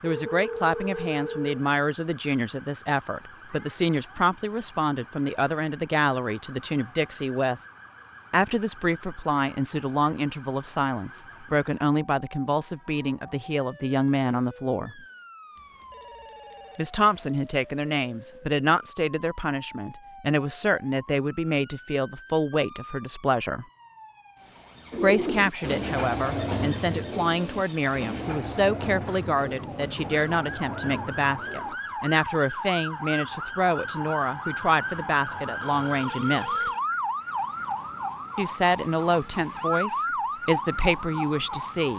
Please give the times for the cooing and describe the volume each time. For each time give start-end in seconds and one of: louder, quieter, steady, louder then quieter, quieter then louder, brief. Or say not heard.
24.9-31.8 quieter.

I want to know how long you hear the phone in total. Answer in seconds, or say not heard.
4 s.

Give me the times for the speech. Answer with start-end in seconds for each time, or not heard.
0.0-7.6, 8.3-15.0, 16.8-23.6, 25.0-36.7, 38.4-41.9.